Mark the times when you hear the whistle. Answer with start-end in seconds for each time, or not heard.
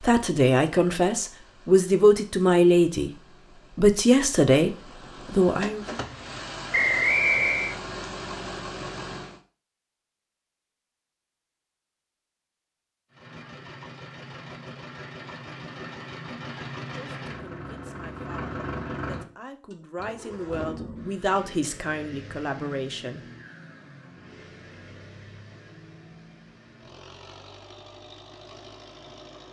6.7-7.8.